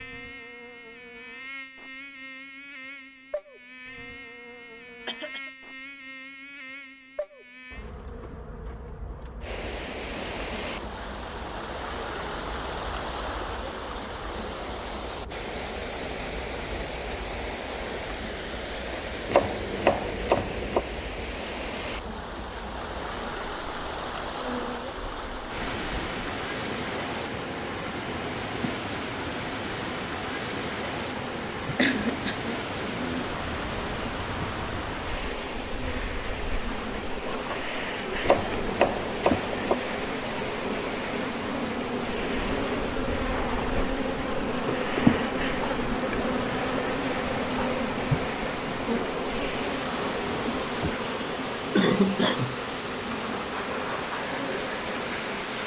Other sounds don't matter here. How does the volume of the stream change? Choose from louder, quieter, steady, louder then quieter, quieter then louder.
steady.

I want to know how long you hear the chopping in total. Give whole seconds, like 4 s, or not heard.
3 s.